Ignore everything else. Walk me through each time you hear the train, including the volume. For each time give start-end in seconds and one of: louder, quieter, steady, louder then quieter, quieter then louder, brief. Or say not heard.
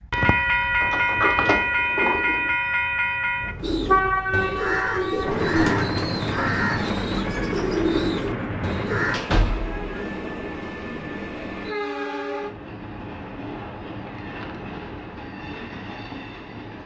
0.0-16.8 quieter.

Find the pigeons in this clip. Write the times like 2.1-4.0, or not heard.
3.6-9.2.